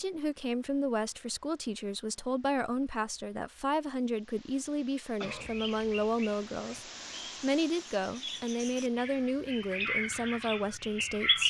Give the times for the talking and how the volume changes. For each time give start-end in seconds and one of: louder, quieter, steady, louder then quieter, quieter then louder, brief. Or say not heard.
0.0-11.4 steady.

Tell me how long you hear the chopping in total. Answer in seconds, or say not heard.
not heard.